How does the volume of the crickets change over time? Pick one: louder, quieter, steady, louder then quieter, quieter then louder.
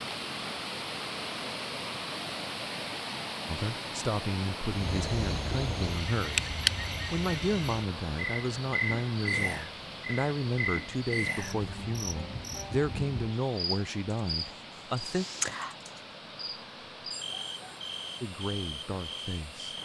quieter.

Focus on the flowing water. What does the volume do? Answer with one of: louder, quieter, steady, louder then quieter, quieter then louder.
quieter.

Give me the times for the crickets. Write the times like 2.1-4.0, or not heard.
4.7-19.8.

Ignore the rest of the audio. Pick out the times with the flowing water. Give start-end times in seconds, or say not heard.
0.0-19.8.